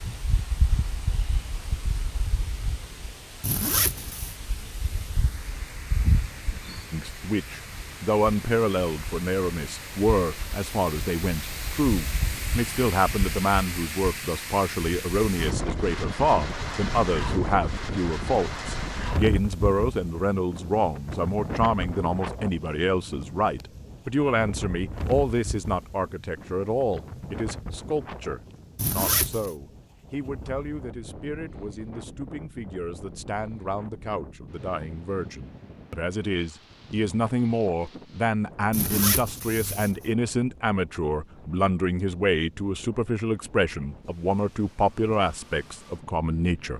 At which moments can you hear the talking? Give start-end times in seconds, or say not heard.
6.9-46.7.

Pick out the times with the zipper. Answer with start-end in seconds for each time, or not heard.
3.4-4.3, 28.8-29.5, 38.7-40.1.